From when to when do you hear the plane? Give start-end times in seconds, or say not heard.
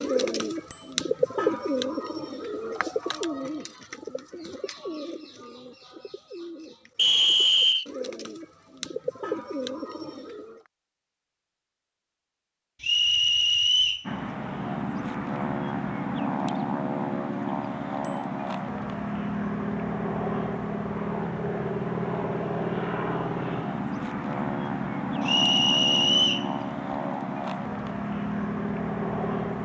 14.1-29.5.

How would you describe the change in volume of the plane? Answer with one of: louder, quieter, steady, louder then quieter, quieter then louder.
steady.